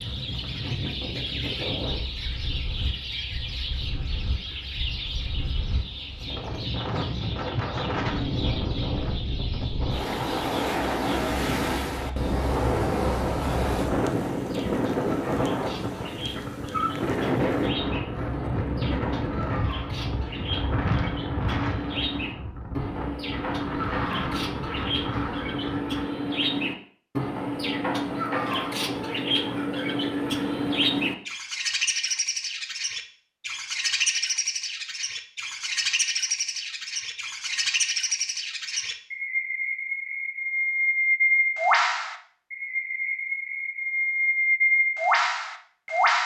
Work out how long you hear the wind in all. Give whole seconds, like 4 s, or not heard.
26 s.